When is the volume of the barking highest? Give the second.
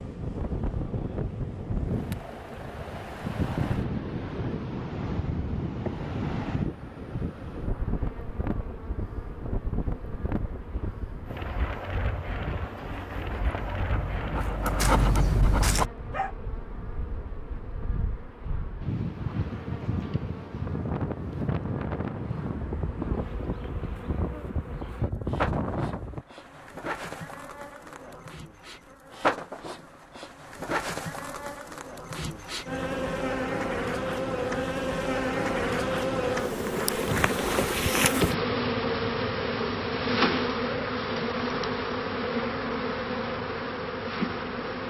15 s.